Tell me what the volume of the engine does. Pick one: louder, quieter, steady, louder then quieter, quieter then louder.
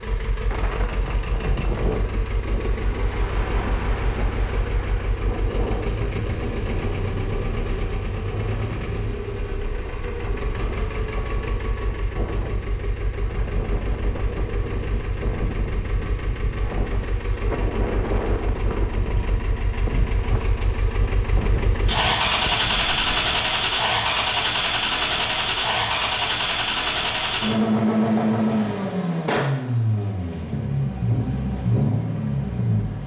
louder.